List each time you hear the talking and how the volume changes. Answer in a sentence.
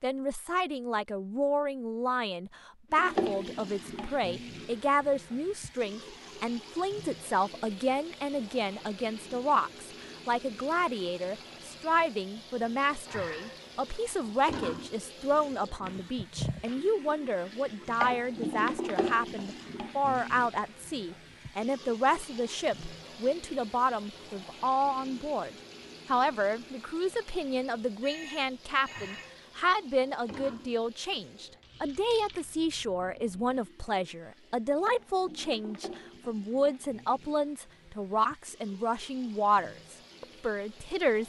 You can hear the talking from 0.0 to 41.2 s, at a steady volume.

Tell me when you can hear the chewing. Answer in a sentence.
You can't hear the chewing here.